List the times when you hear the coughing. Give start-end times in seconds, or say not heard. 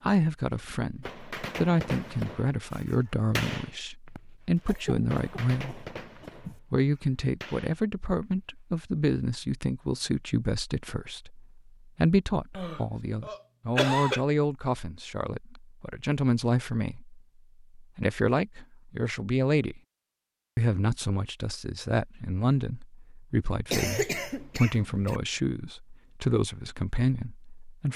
4.7-6.6, 12.6-14.2, 23.7-25.2.